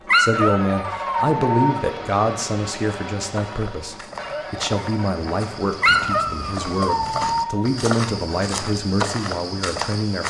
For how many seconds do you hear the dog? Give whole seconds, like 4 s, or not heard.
4 s.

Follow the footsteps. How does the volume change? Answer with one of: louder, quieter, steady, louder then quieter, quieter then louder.
louder.